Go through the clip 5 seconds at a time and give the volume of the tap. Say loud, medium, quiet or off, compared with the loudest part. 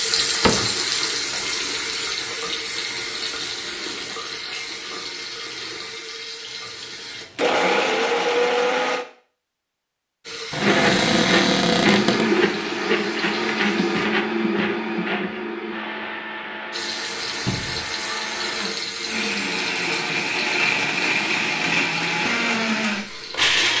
loud, medium, medium, loud, medium.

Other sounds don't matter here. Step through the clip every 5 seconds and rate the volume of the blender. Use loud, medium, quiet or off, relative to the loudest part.
off, loud, loud, medium, loud.